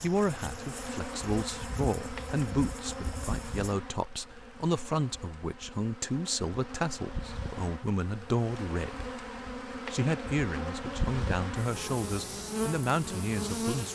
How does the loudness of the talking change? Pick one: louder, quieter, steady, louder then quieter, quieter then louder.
steady.